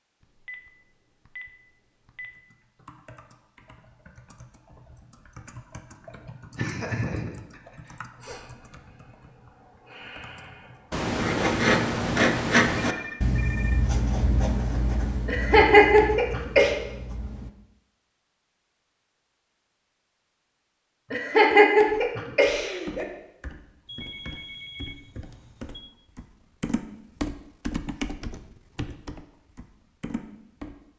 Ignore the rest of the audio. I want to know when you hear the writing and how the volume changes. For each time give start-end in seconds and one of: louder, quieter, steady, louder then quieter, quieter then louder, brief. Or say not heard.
10.9-17.5 quieter.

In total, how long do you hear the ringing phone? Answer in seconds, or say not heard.
5 s.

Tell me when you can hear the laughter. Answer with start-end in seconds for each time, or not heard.
6.5-7.6, 15.2-16.8, 21.1-23.1.